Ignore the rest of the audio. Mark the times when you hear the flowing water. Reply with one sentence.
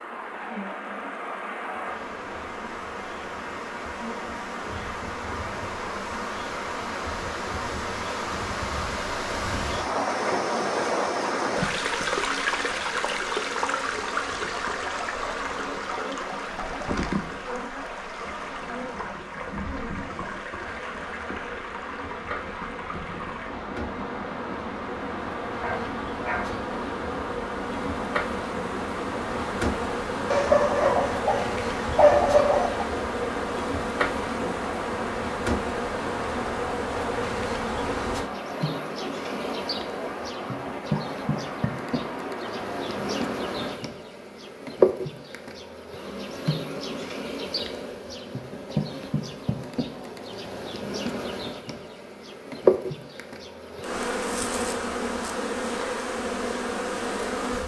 The flowing water can be heard from 0.0 to 43.8 s.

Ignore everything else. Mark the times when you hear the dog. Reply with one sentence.
The dog can be heard from 25.6 to 26.6 s and from 30.3 to 32.9 s.